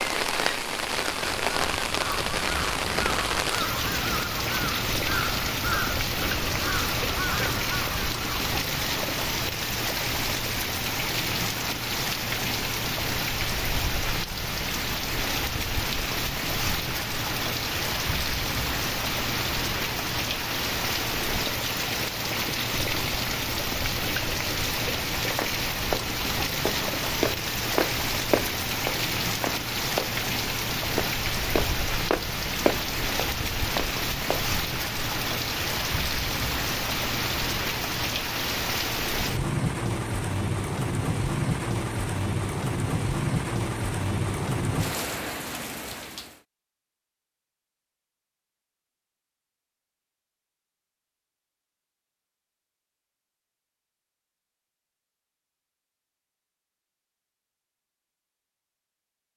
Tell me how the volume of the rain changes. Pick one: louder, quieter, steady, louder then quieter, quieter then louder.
steady.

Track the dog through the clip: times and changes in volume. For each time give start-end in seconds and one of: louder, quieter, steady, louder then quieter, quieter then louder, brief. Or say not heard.
not heard.